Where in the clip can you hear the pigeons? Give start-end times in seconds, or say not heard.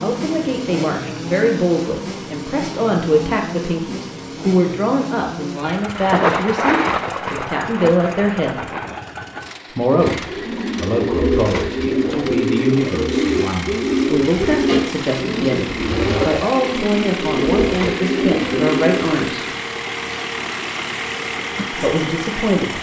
10.1-19.3.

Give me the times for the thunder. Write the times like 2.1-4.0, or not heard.
6.0-9.0.